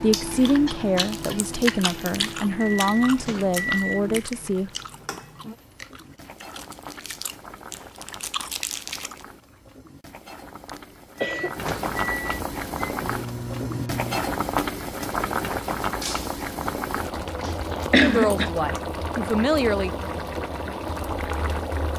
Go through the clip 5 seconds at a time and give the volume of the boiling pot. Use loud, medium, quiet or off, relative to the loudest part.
quiet, quiet, loud, loud, loud.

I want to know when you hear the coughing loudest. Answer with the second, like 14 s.
18 s.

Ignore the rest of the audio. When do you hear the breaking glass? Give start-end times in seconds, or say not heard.
16.0-16.5.